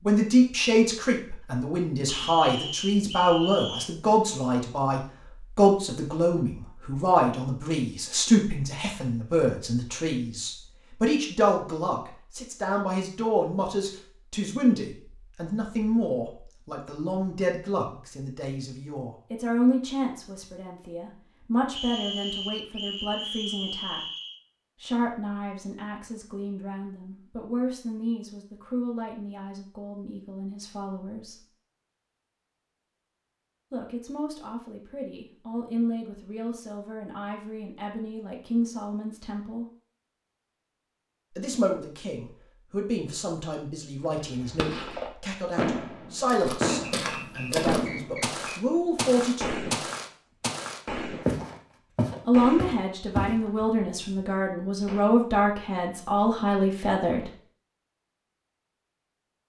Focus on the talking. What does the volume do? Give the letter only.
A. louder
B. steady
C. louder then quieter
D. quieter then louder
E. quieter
D.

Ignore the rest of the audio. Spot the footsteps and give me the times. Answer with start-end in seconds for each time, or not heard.
46.2-53.5.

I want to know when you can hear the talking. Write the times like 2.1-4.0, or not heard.
0.1-24.0, 24.8-31.4, 33.7-39.6, 41.3-49.7, 52.2-57.3.